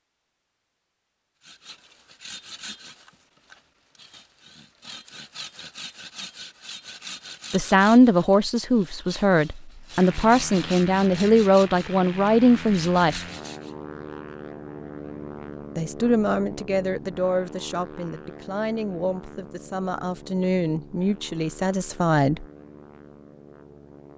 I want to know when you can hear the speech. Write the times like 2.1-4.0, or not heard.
7.5-13.2, 15.8-22.4.